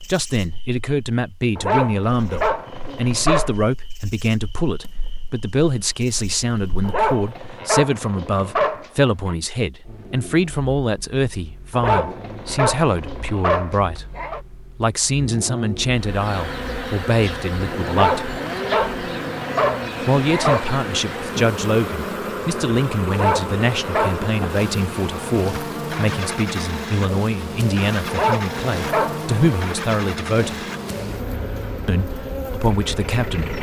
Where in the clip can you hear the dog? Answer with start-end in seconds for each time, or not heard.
1.6-3.5, 6.8-9.3, 11.7-14.4, 17.9-20.6, 23.1-24.2, 28.1-29.3.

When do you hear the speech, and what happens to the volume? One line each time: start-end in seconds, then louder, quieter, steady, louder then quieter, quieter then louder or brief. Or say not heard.
0.0-18.2 steady
20.0-30.6 steady
31.9-33.5 brief.